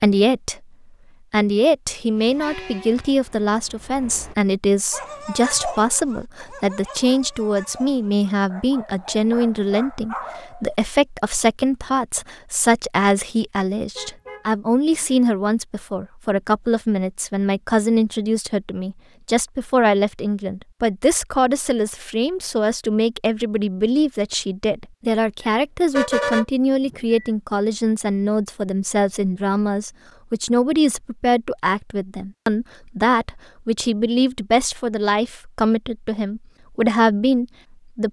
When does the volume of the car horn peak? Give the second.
26 s.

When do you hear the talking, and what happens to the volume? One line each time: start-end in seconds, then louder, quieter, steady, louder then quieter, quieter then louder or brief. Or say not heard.
0.0-0.6 brief
1.3-38.0 steady.